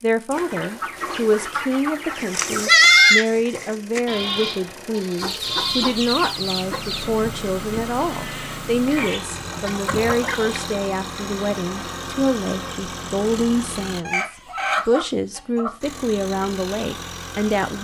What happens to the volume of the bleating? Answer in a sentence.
The volume of the bleating goes down.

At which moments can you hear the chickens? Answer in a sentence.
The chickens can be heard from 0.3 to 2.7 s, from 5.2 to 7.0 s, from 8.9 to 10.6 s and from 14.1 to 15.8 s.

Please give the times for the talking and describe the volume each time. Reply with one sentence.
You can hear the talking from 0.0 to 17.7 s, at a steady volume.